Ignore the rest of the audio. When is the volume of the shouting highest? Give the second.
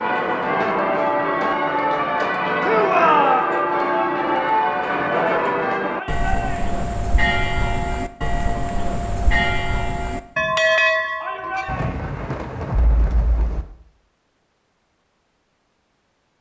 3 s.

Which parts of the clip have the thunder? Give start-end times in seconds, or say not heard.
11.7-13.7.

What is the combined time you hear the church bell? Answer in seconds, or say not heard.
12 s.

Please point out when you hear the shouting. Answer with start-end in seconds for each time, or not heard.
2.6-3.5, 5.9-6.7, 11.2-12.2.